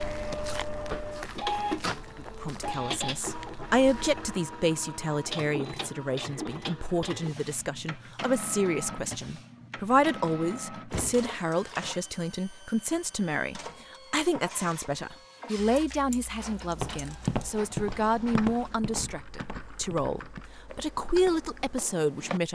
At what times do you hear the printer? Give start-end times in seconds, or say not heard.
0.0-18.8.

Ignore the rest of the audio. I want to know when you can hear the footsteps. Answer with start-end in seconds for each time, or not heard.
0.0-4.2, 16.8-22.4.